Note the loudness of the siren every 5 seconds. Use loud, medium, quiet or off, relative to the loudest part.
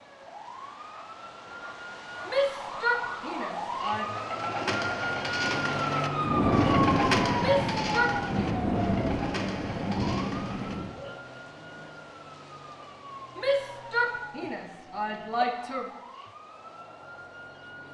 medium, loud, quiet, quiet.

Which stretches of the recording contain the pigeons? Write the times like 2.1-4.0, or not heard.
4.0-11.2.